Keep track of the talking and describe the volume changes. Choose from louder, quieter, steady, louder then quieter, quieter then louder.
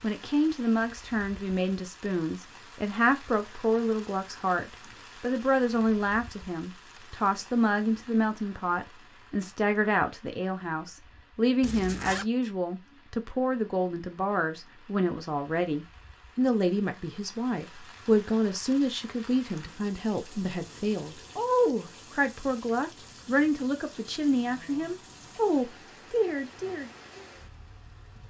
steady.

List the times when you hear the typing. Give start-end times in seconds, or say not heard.
not heard.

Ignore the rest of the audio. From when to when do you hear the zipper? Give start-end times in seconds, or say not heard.
11.6-12.2.